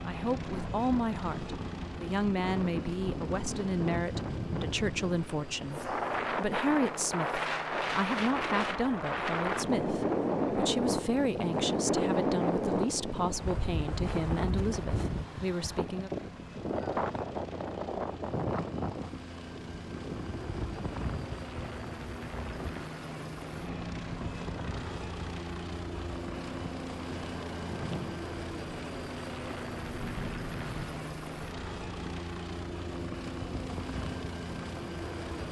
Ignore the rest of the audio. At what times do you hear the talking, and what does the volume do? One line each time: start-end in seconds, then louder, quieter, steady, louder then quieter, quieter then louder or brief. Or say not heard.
0.1-16.1 steady.